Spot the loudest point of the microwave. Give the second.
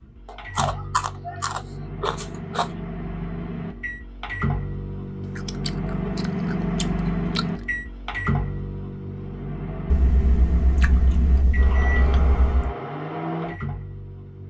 7 s.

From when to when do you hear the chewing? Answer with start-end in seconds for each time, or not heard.
0.2-2.7, 5.3-7.5, 9.9-12.8.